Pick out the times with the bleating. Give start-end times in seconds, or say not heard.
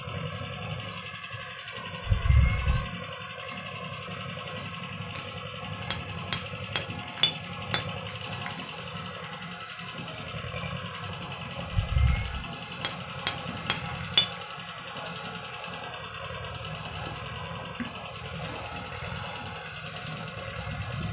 not heard.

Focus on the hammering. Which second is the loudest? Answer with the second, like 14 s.
14 s.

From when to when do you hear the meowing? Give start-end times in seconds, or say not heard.
2.0-2.9, 11.7-12.4.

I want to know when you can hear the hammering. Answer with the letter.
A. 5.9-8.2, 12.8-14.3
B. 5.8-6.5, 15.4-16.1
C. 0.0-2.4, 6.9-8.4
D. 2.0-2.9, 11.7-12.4
A.